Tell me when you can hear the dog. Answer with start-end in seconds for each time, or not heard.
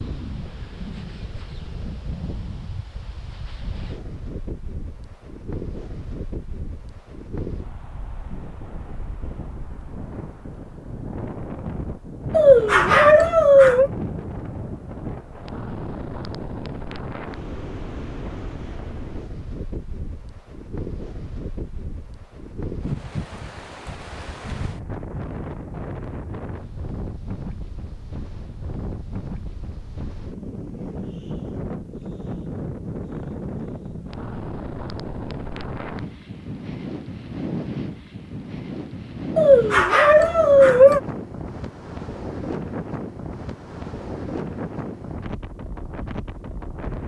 12.3-13.9, 39.4-41.0.